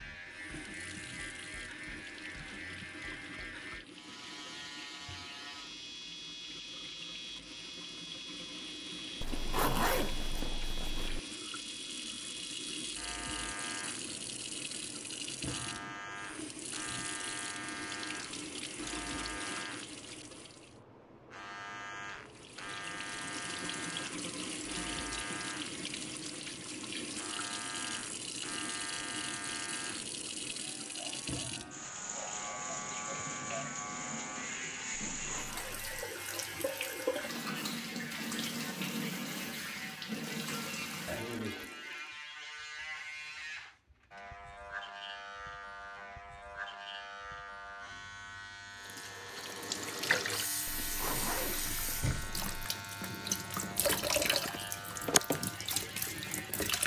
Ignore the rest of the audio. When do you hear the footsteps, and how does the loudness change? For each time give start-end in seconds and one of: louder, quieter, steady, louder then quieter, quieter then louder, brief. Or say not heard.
not heard.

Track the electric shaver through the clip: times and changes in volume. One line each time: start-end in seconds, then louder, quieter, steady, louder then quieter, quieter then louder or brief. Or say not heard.
0.0-56.8 steady.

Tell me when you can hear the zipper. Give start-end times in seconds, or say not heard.
9.2-11.2, 35.1-36.0, 50.6-52.5.